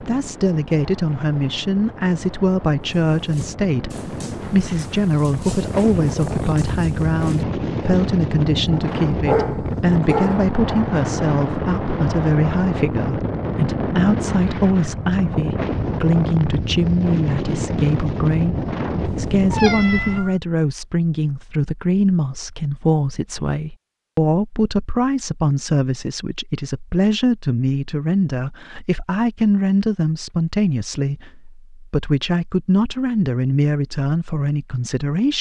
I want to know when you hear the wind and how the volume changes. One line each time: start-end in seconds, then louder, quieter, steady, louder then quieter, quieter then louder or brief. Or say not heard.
0.0-20.2 louder.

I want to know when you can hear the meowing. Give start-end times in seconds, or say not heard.
19.1-20.4.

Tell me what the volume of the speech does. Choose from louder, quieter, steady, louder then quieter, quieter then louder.
steady.